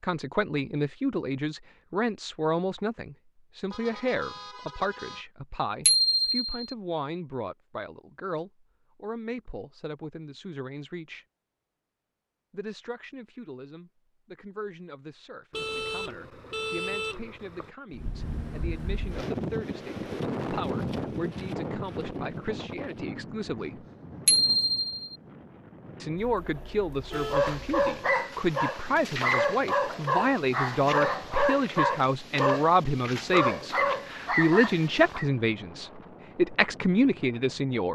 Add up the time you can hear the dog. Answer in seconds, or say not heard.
8 s.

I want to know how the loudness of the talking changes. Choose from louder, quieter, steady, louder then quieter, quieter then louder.
quieter then louder.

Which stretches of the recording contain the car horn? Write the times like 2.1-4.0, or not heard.
3.7-5.2, 15.5-17.7, 26.1-27.9.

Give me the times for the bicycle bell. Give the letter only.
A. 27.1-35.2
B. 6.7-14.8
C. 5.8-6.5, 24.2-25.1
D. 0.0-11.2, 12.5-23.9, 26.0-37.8
C.